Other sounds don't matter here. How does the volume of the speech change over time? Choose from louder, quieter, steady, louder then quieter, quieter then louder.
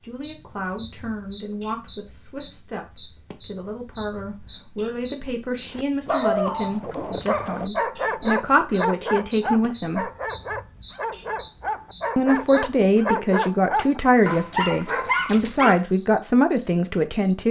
louder.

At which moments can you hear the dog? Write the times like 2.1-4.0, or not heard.
5.7-15.8.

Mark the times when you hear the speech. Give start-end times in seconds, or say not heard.
0.0-10.1, 12.2-17.4.